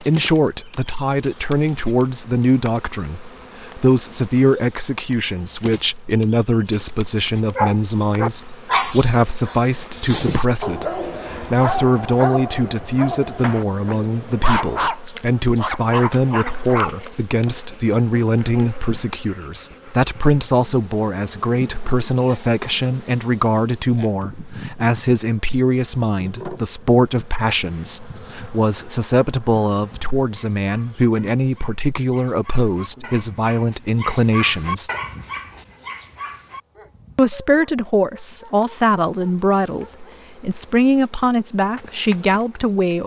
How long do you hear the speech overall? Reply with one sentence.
The speech can be heard for 41 seconds in total.